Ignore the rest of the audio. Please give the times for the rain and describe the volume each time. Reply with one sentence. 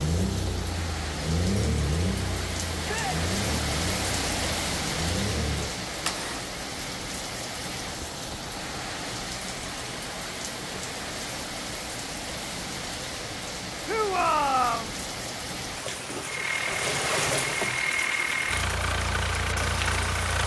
You can hear the rain from 0.0 to 20.4 s, at a steady volume.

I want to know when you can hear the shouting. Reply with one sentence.
The shouting can be heard from 2.8 to 3.2 s and from 13.8 to 14.9 s.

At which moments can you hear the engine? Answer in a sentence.
You can hear the engine from 0.0 to 6.5 s and from 16.2 to 20.4 s.